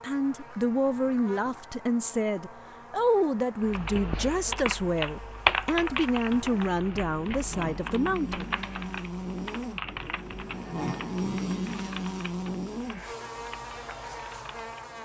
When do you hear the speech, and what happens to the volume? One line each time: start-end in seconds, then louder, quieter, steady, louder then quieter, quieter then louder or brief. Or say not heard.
0.0-8.5 steady.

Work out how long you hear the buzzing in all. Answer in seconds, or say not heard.
15 s.